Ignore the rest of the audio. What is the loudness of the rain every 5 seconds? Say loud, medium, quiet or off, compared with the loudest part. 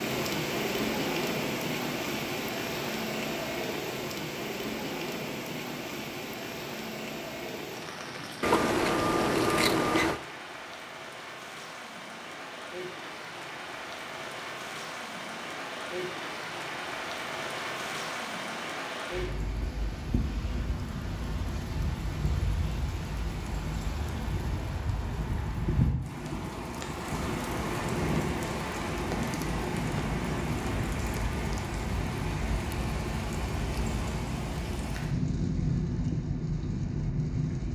loud, medium, medium, medium, medium, loud, loud, loud.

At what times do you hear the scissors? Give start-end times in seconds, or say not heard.
8.4-10.2.